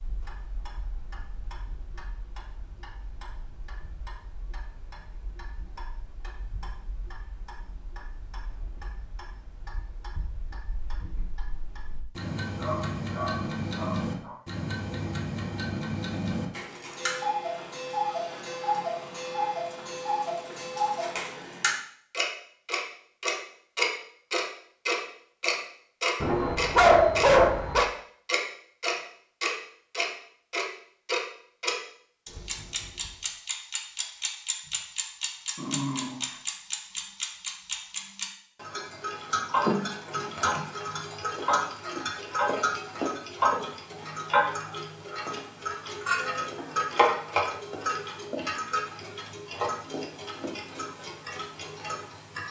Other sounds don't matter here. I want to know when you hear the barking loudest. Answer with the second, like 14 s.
27 s.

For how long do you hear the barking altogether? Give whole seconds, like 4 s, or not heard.
4 s.